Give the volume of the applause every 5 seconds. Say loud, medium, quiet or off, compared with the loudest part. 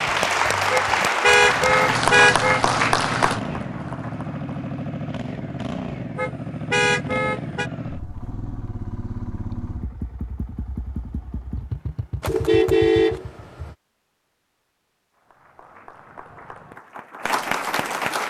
loud, off, off, medium.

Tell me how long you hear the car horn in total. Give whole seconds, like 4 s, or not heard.
5 s.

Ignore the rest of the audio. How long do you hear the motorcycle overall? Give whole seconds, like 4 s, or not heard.
12 s.